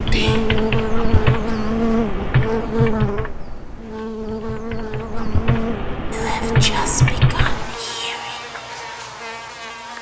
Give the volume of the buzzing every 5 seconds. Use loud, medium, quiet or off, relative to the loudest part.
loud, medium.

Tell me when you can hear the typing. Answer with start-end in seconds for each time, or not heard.
0.0-7.8.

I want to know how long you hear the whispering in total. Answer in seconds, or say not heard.
3 s.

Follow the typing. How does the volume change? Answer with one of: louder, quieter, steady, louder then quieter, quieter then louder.
quieter then louder.